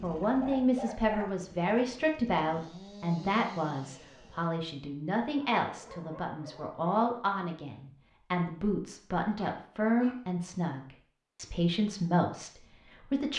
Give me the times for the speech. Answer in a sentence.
You can hear the speech from 0.0 to 13.3 s.